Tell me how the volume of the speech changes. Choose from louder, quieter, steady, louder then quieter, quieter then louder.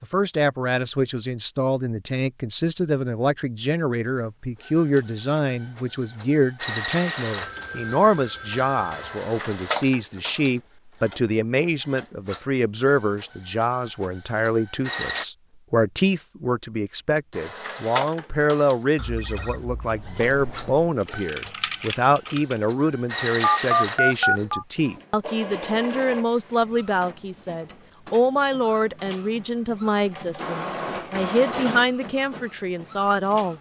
steady.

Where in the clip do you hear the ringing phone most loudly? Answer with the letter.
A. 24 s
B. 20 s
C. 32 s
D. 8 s
A.